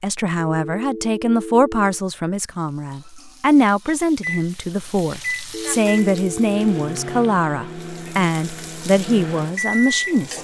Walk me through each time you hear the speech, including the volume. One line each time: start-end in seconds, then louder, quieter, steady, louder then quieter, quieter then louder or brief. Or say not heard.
0.0-10.4 steady.